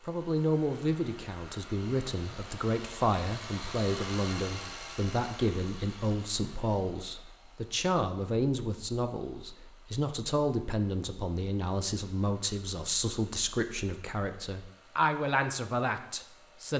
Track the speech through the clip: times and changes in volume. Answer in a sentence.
The speech can be heard from 0.1 to 16.7 s, at a steady volume.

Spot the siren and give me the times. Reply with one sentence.
The siren can't be heard in this clip.